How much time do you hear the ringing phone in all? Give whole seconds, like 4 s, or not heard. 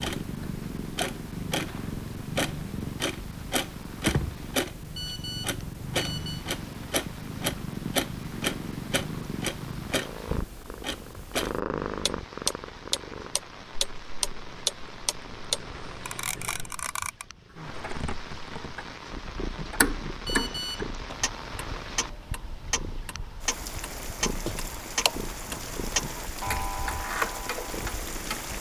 2 s.